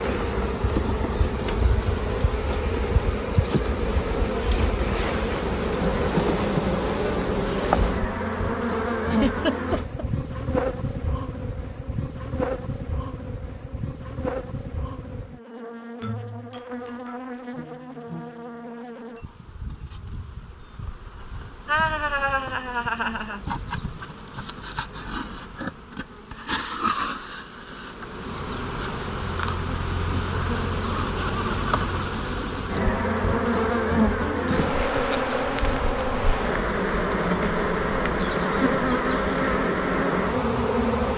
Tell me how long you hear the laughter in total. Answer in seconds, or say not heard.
4 s.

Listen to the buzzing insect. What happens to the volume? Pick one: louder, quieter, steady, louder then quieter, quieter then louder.
quieter then louder.